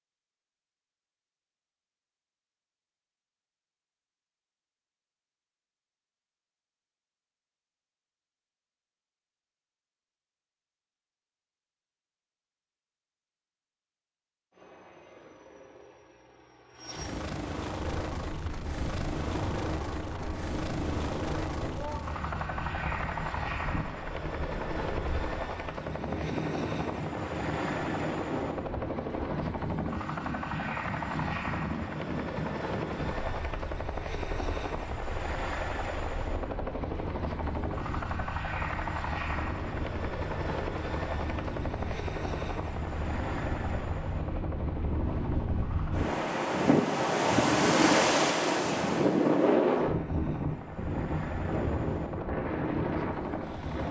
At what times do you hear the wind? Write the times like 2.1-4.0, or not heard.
17.9-53.8.